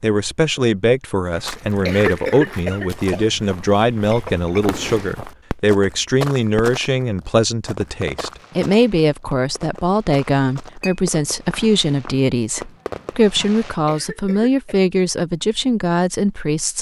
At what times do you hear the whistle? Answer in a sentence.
The whistle can't be heard in this clip.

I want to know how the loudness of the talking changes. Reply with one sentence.
The loudness of the talking stays about the same.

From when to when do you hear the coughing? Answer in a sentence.
The coughing can be heard from 1.6 to 3.5 s and from 13.7 to 14.8 s.